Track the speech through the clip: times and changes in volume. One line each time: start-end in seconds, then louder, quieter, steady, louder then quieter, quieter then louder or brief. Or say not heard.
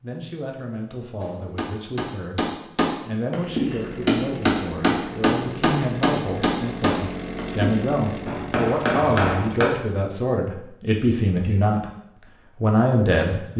0.0-11.8 louder
12.6-13.5 brief.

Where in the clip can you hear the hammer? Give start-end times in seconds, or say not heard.
1.2-9.7.